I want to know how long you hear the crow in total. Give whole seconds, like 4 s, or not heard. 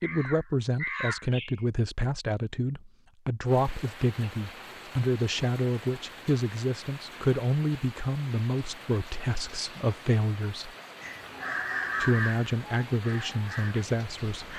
5 s.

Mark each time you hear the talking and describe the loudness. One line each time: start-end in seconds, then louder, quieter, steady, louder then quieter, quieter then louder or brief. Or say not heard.
0.0-10.7 steady
12.0-14.5 brief.